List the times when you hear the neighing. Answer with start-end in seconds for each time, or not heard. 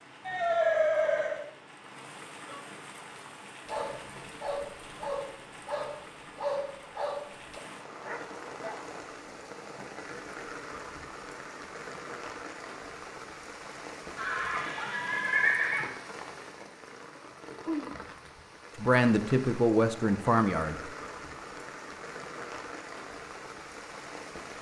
0.2-1.4, 14.2-15.9.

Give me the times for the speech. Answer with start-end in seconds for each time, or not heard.
18.8-20.8.